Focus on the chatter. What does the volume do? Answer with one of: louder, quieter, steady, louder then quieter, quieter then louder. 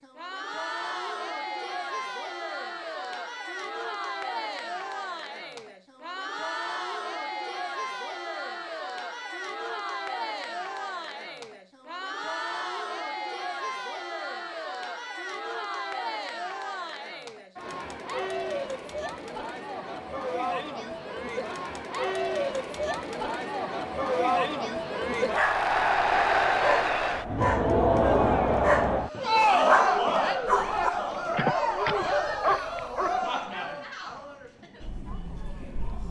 louder.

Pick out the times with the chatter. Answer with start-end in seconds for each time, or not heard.
0.0-36.0.